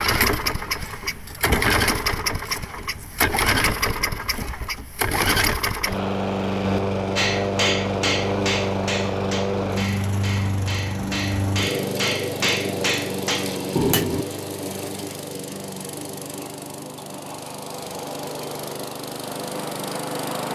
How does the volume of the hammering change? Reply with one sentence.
The loudness of the hammering goes down, then up.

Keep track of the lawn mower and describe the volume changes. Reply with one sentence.
The volume of the lawn mower goes down.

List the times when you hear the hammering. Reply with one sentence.
You can hear the hammering from 7.2 to 14.2 s.